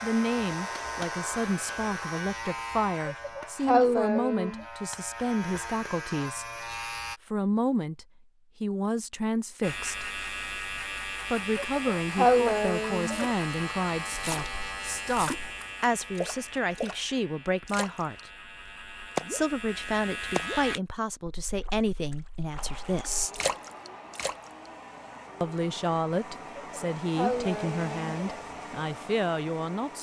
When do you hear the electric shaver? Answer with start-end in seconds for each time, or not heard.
0.0-7.2, 9.6-20.8.